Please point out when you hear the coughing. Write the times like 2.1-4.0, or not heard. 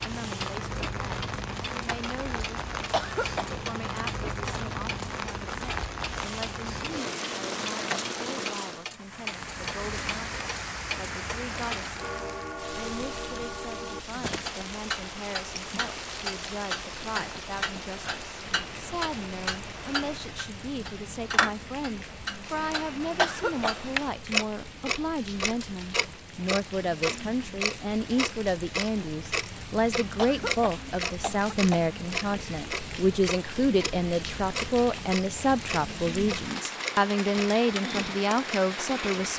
2.9-3.5, 23.1-23.9, 30.1-31.8.